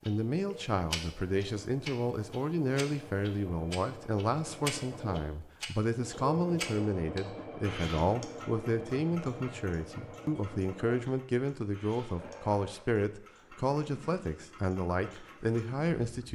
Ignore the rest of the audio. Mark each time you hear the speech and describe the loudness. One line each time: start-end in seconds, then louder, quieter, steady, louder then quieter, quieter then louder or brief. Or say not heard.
0.1-16.3 steady.